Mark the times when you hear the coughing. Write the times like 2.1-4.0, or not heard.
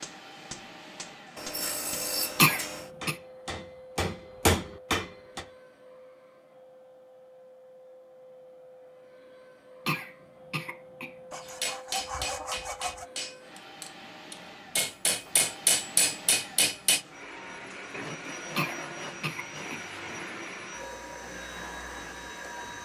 2.4-3.1, 9.8-11.5, 18.6-19.8.